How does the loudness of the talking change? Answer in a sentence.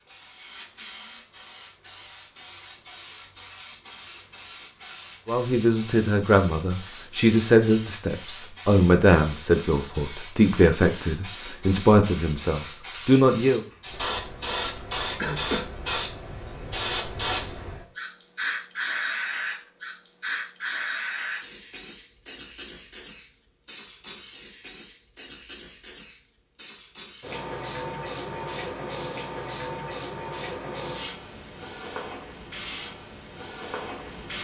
The volume of the talking stays about the same.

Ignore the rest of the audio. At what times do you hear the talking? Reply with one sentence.
You can hear the talking from 5.2 to 13.7 s.